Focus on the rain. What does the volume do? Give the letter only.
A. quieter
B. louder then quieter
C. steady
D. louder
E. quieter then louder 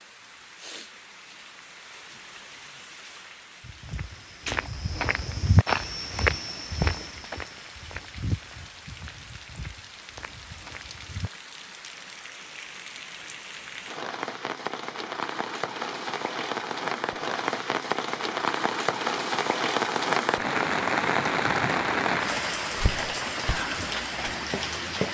D.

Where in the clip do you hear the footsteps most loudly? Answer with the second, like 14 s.
6 s.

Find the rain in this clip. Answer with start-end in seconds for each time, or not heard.
0.0-25.0.